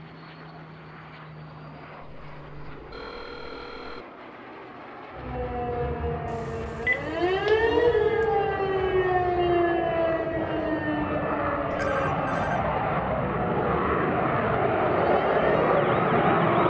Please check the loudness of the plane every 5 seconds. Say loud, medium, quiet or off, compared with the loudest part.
quiet, quiet, medium, loud.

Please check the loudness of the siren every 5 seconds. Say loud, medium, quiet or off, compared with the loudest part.
off, loud, medium, medium.